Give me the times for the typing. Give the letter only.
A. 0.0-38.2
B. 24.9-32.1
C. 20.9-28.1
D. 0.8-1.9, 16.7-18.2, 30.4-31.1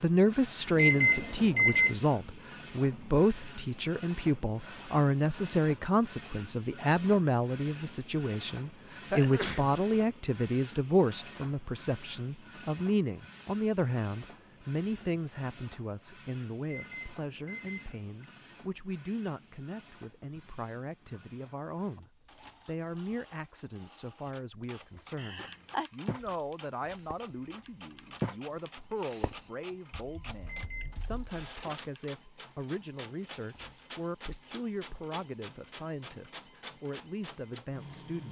B.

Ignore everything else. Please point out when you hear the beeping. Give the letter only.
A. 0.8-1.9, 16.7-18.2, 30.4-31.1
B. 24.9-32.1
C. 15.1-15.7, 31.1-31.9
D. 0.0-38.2
A.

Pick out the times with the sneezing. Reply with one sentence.
You can hear the sneezing from 9.1 to 9.7 s and from 25.1 to 25.9 s.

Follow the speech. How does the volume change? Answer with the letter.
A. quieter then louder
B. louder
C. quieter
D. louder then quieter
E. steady
C.